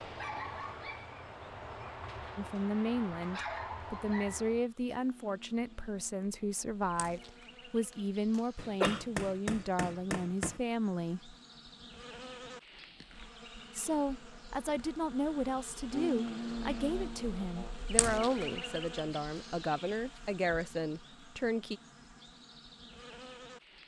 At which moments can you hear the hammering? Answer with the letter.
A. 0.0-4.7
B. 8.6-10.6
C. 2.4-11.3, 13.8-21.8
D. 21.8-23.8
B.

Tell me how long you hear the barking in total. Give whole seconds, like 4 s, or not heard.
5 s.